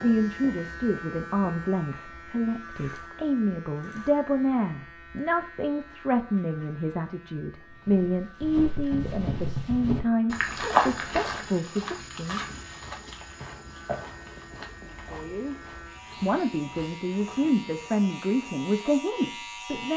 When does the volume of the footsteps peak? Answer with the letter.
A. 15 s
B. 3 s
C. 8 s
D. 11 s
D.